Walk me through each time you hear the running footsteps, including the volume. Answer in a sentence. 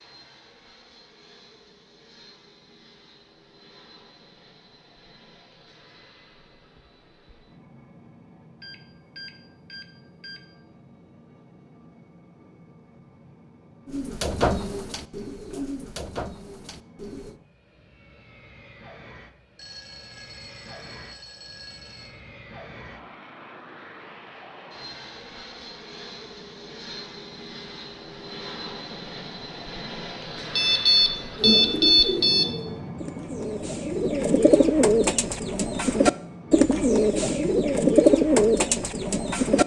You can't hear the running footsteps here.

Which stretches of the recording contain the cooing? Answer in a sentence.
You can hear the cooing from 13.8 to 17.4 s and from 31.4 to 39.6 s.